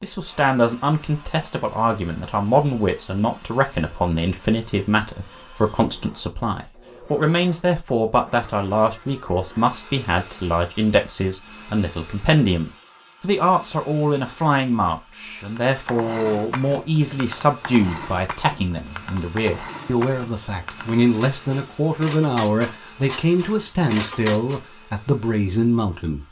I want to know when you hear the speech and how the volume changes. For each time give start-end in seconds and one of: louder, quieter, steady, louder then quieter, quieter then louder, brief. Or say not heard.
0.0-26.2 steady.